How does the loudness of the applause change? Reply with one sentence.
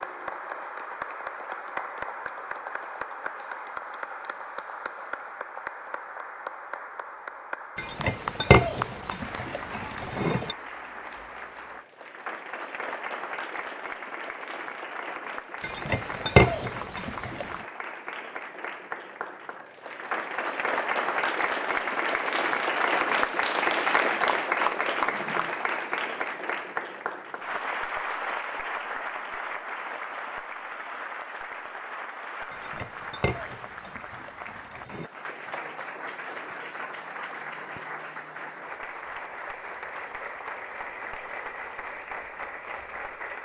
The volume of the applause goes up, then down.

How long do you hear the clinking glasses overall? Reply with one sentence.
You can hear the clinking glasses for 7 seconds altogether.